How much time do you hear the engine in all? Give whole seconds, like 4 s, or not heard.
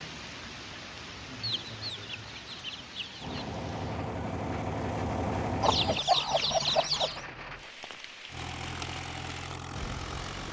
5 s.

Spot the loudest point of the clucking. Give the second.
6 s.